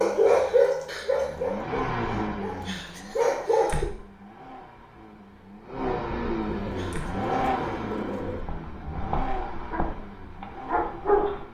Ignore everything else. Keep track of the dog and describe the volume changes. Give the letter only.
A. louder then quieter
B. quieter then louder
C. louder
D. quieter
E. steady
B.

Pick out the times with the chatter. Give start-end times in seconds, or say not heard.
not heard.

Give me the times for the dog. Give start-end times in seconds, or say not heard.
0.0-3.9, 6.7-11.5.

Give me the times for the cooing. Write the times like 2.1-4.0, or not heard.
6.4-8.4.